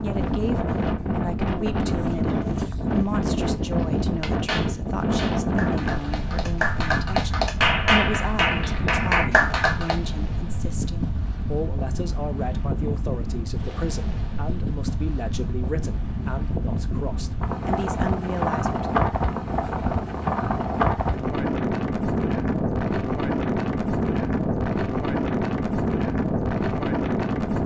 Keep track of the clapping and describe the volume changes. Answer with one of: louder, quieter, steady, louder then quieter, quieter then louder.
louder.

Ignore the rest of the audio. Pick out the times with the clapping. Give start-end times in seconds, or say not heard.
4.2-9.9.